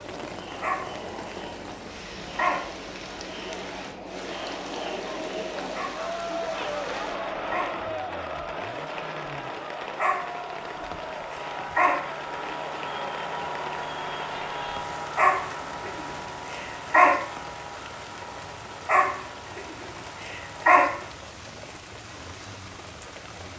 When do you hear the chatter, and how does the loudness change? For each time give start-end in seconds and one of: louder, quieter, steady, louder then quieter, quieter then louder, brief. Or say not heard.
0.0-14.9 louder then quieter.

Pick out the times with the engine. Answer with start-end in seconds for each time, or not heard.
0.0-23.5.